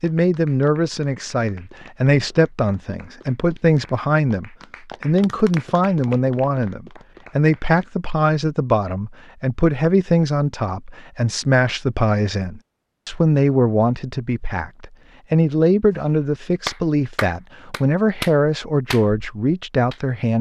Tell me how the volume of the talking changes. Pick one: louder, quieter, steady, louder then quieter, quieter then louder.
steady.